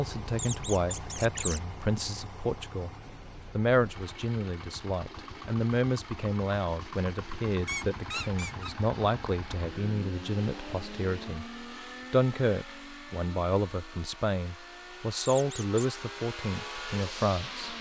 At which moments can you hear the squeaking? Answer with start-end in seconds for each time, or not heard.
0.3-1.6, 7.7-8.8, 15.2-15.8.